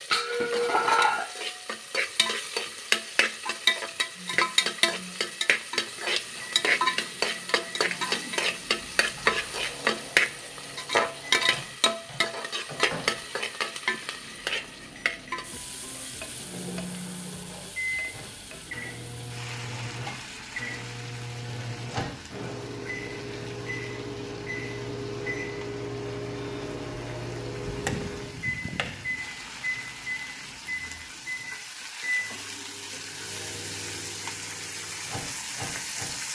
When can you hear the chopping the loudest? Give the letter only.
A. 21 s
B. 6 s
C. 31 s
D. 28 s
D.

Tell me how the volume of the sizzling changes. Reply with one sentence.
The loudness of the sizzling goes down, then up.